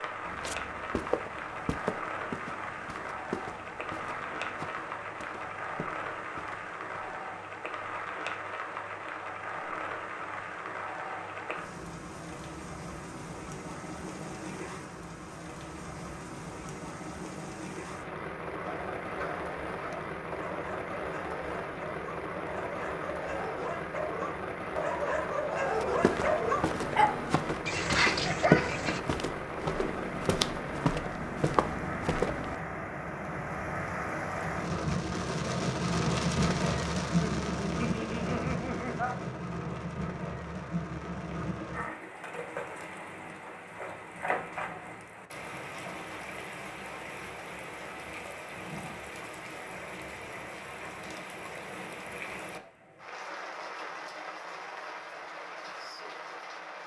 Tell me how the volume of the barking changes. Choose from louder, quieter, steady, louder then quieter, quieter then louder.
louder.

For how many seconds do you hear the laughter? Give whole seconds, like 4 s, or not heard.
2 s.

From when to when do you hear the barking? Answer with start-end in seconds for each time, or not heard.
18.6-29.0.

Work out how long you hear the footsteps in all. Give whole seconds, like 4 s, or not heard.
14 s.